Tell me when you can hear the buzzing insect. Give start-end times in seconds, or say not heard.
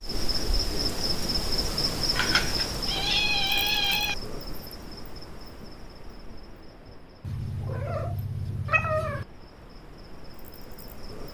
0.0-11.2.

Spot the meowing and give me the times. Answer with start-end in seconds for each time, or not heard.
2.1-4.2, 7.2-9.2.